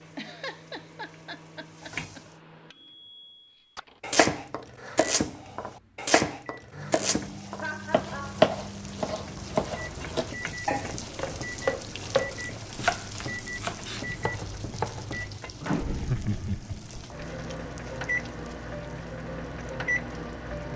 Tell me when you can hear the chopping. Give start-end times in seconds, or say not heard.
4.0-15.4.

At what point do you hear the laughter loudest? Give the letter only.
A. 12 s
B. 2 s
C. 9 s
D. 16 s
D.